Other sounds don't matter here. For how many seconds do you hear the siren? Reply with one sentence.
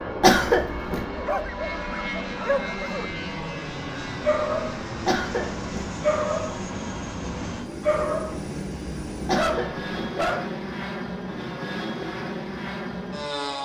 The siren can't be heard in this clip.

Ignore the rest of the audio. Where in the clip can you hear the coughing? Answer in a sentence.
The coughing can be heard from 0.2 to 1.1 s, from 5.0 to 5.9 s and from 9.2 to 9.9 s.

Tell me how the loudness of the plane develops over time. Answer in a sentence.
The loudness of the plane stays about the same.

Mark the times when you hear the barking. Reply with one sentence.
The barking can be heard from 1.1 to 3.1 s, from 4.2 to 4.8 s, from 6.0 to 6.7 s, from 7.8 to 8.4 s and from 9.2 to 10.6 s.